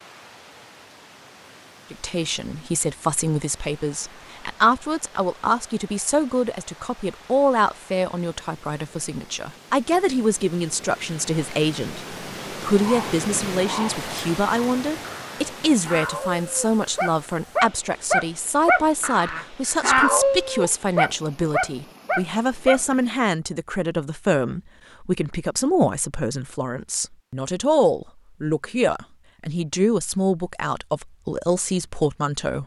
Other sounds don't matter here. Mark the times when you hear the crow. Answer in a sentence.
The crow can't be heard in this clip.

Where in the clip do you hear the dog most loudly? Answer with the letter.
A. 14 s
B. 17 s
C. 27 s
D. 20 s
D.